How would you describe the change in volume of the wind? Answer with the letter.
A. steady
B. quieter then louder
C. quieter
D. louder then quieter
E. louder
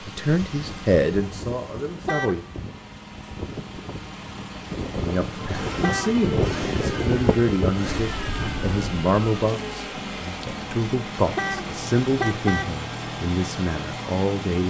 E.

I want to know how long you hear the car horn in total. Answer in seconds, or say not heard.
2 s.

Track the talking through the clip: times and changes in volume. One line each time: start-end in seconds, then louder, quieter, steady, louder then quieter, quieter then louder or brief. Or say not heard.
0.0-2.4 brief
5.0-14.6 steady.